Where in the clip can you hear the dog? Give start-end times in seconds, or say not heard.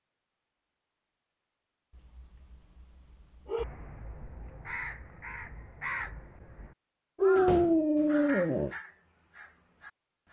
1.9-3.6, 7.2-8.7.